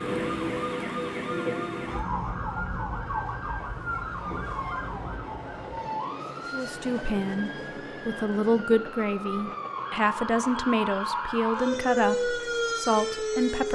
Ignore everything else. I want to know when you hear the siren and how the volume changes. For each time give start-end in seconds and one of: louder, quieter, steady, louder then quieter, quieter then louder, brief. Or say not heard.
0.0-13.6 quieter then louder.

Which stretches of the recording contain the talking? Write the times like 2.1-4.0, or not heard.
6.5-13.6.